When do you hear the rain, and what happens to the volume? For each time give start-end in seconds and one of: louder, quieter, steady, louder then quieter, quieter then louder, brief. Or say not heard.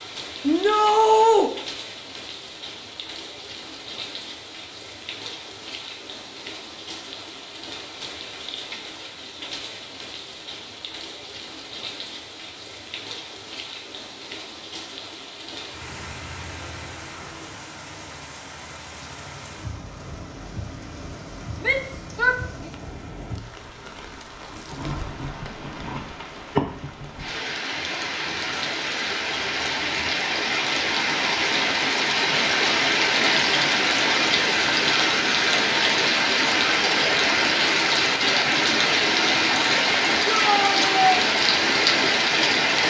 0.0-42.8 louder.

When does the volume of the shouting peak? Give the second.
1 s.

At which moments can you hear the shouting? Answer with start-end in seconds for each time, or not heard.
0.4-1.5, 21.6-22.4, 40.2-41.1.